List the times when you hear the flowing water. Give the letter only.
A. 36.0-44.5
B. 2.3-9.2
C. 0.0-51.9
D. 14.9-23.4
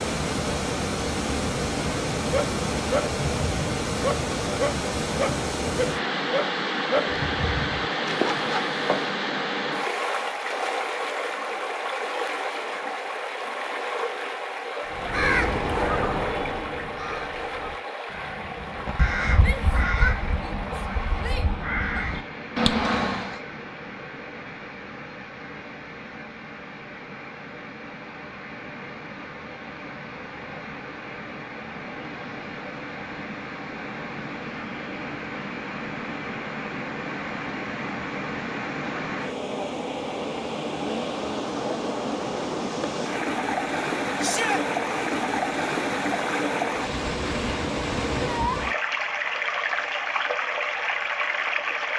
C.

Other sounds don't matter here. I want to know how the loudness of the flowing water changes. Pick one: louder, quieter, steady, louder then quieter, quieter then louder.
quieter then louder.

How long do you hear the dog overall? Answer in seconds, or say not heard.
7 s.